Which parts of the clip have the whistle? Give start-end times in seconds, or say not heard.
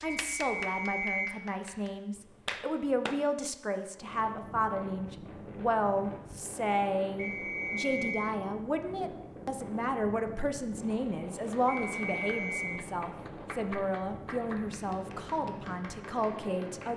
0.2-1.4, 7.2-8.3, 11.7-12.8.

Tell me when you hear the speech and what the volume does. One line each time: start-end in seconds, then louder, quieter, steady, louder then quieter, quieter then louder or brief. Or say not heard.
0.0-16.9 steady.